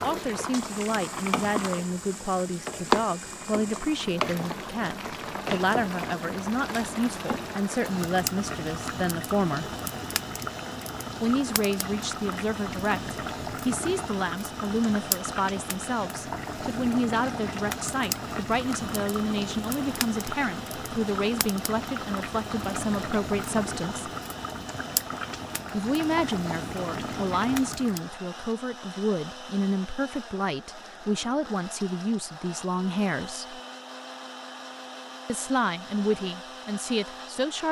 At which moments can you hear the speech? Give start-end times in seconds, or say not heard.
0.0-9.7, 11.2-24.1, 25.7-33.6, 35.2-37.6.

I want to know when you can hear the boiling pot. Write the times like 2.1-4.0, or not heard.
0.0-28.1.